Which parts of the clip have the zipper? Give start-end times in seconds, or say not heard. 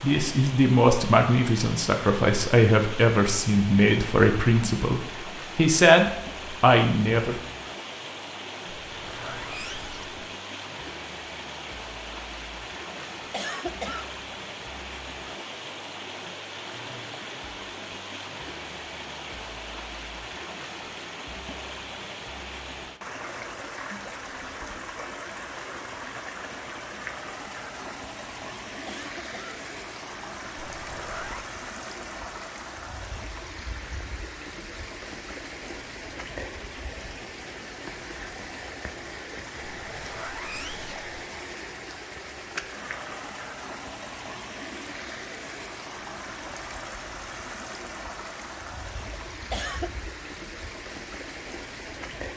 8.7-10.2, 30.6-31.4, 39.6-41.0.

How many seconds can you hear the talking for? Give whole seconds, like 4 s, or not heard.
7 s.